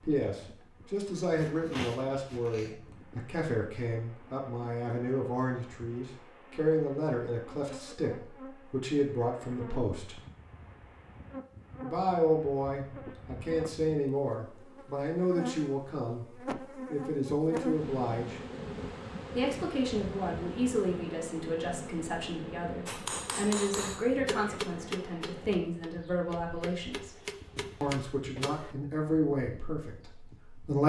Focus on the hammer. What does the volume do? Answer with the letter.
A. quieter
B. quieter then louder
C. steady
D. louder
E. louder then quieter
B.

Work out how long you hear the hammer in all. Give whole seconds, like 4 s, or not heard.
6 s.